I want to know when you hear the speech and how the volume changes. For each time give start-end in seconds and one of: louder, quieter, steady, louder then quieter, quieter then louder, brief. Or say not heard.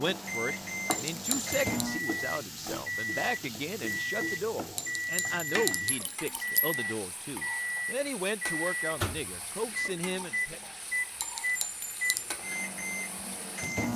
0.0-10.6 steady.